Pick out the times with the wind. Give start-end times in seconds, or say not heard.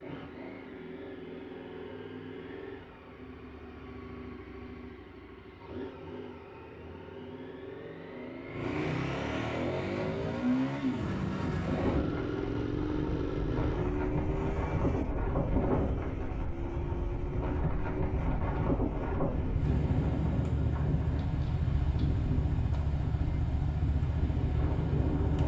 11.7-25.4.